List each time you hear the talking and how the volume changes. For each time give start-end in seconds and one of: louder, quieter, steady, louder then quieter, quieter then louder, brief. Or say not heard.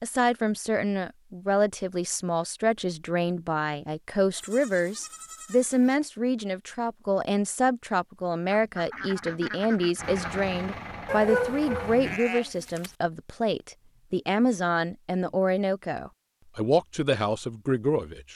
0.0-18.3 steady.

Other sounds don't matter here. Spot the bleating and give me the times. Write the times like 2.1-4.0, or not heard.
4.3-6.0, 11.1-12.9.